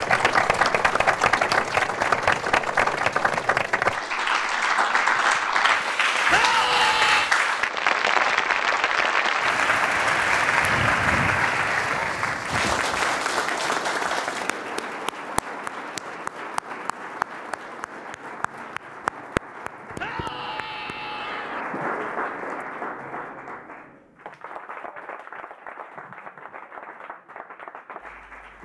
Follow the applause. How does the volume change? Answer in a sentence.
The volume of the applause goes down.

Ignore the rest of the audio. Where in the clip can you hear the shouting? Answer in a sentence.
You can hear the shouting from 6.2 to 7.3 s and from 19.9 to 21.6 s.